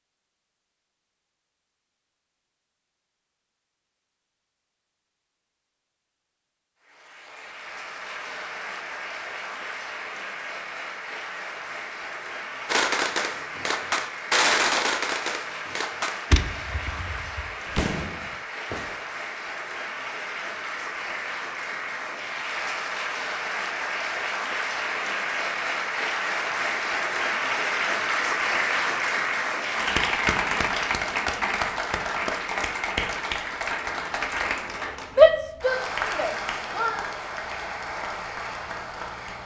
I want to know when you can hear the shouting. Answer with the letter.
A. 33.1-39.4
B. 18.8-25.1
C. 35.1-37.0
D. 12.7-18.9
C.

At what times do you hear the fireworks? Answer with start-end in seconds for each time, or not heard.
12.7-18.9.